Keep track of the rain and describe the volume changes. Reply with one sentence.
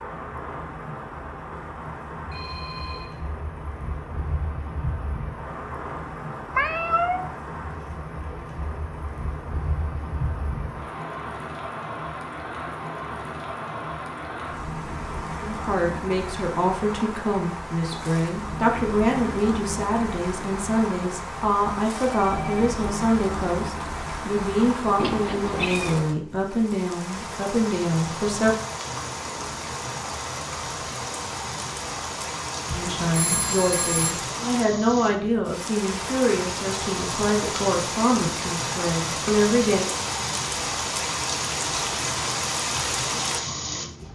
The loudness of the rain goes up.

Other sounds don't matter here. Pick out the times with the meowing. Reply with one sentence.
The meowing can be heard from 6.5 to 7.3 s and from 24.9 to 26.0 s.